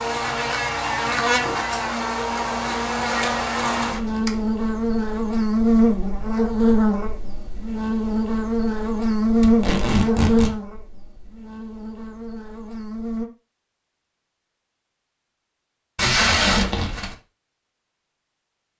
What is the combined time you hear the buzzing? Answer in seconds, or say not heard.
13 s.